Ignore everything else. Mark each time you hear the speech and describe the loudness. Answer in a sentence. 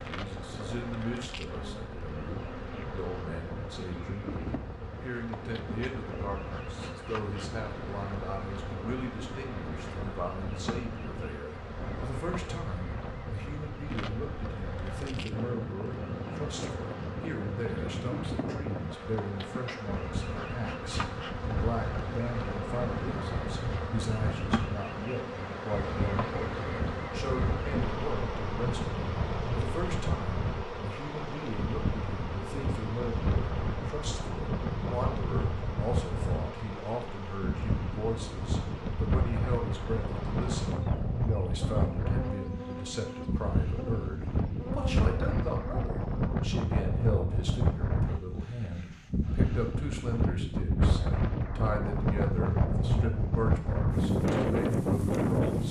The speech can be heard from 0.1 to 55.6 s, at a steady volume.